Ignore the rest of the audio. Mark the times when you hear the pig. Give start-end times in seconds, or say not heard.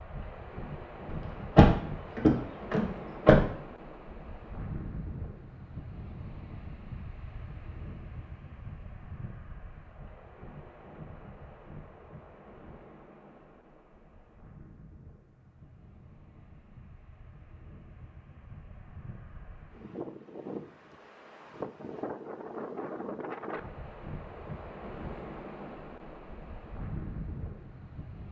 not heard.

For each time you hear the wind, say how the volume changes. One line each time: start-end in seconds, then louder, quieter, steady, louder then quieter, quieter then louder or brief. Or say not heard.
0.0-28.2 quieter then louder.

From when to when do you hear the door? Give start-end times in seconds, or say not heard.
1.1-3.5.